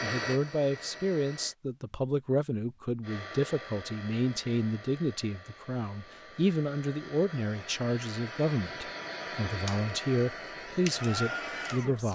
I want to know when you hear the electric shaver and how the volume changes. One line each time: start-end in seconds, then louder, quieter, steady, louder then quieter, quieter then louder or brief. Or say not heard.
not heard.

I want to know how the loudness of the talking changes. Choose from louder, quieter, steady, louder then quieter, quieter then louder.
steady.